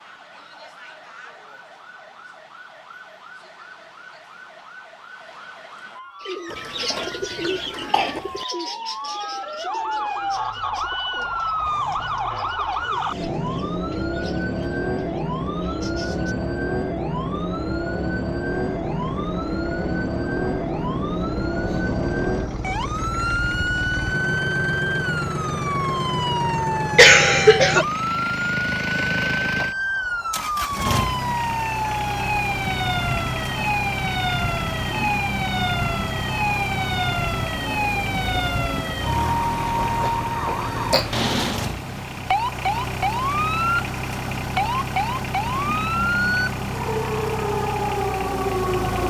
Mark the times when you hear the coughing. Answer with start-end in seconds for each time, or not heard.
6.5-8.2, 26.9-27.9, 39.8-41.1.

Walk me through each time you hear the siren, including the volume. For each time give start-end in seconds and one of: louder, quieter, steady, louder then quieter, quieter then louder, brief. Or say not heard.
0.0-49.0 louder.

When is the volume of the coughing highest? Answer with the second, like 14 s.
27 s.